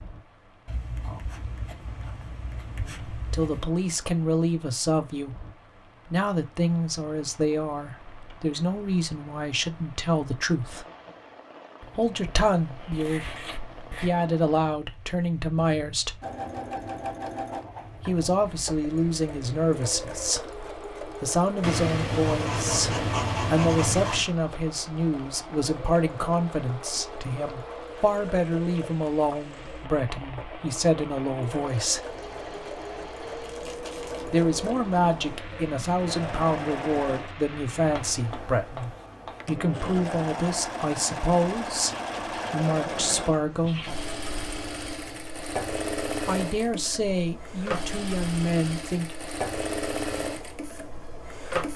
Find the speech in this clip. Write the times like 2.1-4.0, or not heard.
3.1-5.3, 6.0-10.8, 11.9-16.2, 18.1-32.0, 34.2-43.9, 46.2-49.1.